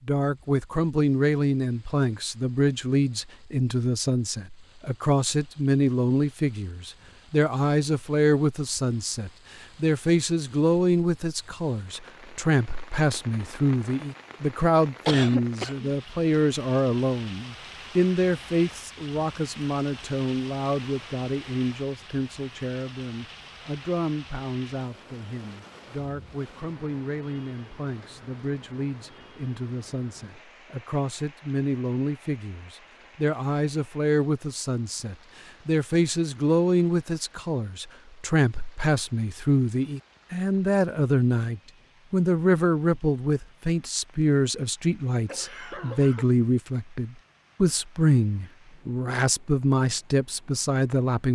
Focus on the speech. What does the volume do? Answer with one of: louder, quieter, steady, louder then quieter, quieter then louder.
quieter then louder.